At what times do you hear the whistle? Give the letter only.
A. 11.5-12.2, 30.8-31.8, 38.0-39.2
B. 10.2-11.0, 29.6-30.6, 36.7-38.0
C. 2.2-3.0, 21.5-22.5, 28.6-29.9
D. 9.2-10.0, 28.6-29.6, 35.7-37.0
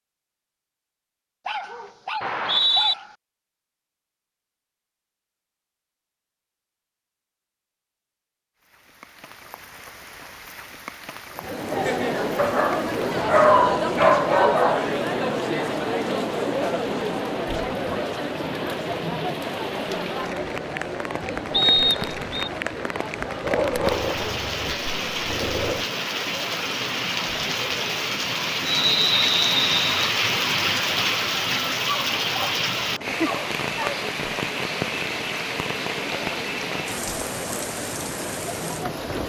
C.